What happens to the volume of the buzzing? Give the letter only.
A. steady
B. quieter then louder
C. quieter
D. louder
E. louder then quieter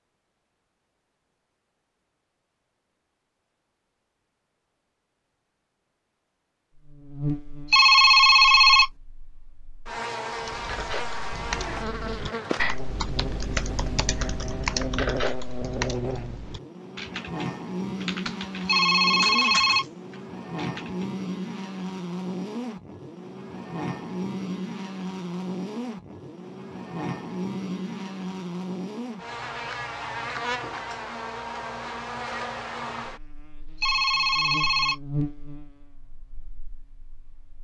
A.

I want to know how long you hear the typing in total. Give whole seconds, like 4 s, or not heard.
11 s.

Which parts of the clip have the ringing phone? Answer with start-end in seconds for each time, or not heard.
7.7-8.9, 18.6-19.9, 33.8-35.0.